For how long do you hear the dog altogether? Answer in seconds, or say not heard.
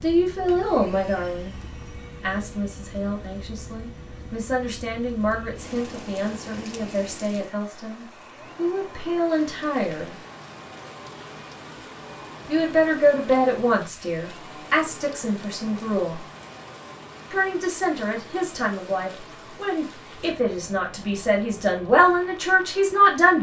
not heard.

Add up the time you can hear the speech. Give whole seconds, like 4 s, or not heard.
19 s.